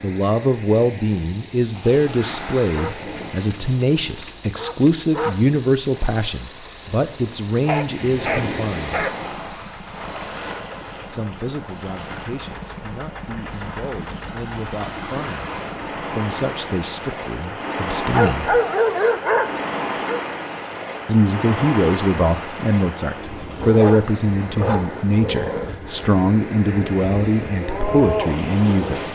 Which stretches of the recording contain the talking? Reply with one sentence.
The talking can be heard from 0.0 to 9.1 s, from 11.1 to 18.6 s and from 21.1 to 29.0 s.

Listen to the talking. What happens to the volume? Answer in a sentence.
The volume of the talking goes down, then up.